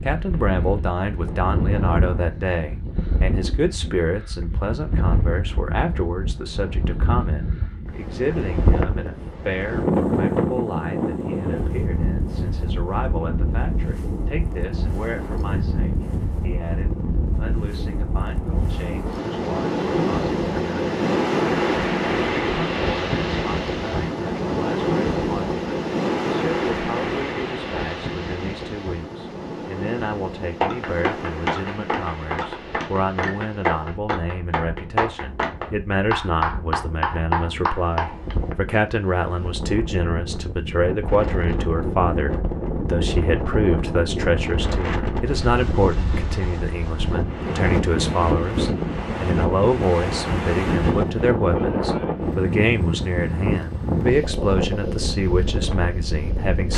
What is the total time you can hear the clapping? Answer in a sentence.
You can hear the clapping for 8 seconds altogether.